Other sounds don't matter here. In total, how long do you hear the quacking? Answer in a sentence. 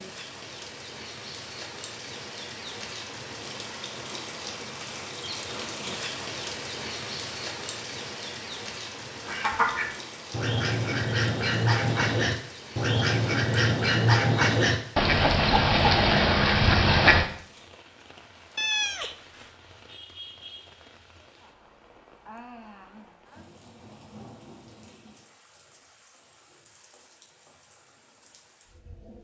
You can hear the quacking for 8 seconds altogether.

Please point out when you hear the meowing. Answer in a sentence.
The meowing can be heard from 18.6 to 19.4 s.